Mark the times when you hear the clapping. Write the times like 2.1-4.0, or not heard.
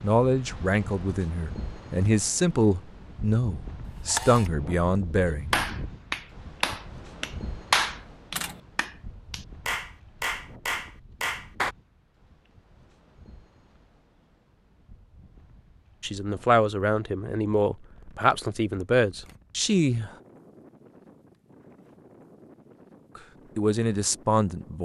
5.2-11.8.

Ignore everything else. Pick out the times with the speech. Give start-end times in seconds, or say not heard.
0.0-5.5, 16.0-20.1, 23.1-24.8.